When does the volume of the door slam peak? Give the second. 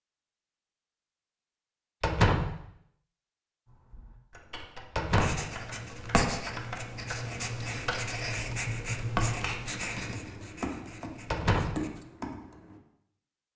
2 s.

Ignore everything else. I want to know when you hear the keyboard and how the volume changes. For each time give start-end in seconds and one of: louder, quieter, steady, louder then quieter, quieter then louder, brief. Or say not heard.
3.6-12.8 louder.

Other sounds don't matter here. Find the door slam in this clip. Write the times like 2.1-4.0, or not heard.
2.0-2.6, 5.0-5.5, 11.3-11.8.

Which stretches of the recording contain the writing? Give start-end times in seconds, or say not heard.
5.1-12.1.